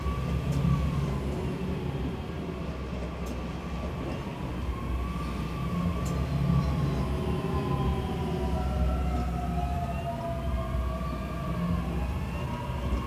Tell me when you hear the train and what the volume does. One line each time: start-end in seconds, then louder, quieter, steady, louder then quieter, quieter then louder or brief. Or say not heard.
0.0-13.0 steady.